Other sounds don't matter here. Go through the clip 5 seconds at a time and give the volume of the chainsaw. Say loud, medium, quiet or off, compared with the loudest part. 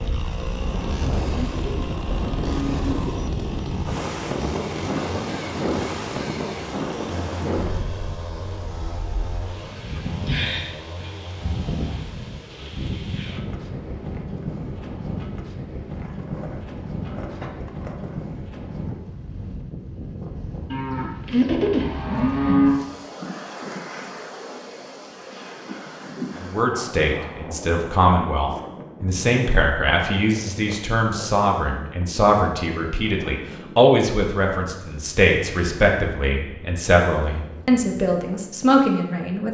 loud, loud, medium, medium, off, off, off, off.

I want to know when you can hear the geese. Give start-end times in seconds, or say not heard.
not heard.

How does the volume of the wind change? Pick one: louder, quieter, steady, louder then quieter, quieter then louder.
quieter.